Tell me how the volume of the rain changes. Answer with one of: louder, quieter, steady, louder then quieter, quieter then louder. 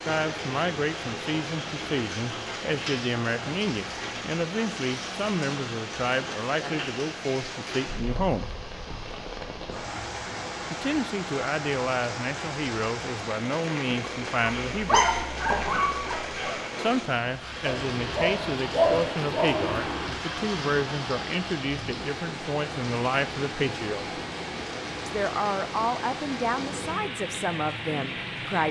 steady.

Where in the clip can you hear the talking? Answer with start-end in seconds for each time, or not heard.
0.1-8.4, 10.7-15.2, 16.8-24.1, 25.1-28.6.